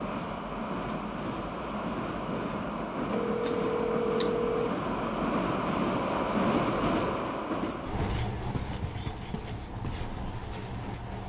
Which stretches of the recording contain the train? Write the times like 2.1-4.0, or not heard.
0.0-11.2.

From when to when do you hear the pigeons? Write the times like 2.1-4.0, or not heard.
not heard.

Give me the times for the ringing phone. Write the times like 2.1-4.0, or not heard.
3.1-4.7.